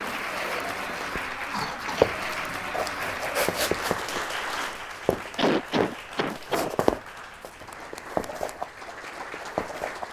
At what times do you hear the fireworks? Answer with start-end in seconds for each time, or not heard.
not heard.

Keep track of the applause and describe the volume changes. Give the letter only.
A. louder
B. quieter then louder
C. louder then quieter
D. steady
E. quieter
E.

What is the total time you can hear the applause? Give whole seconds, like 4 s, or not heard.
10 s.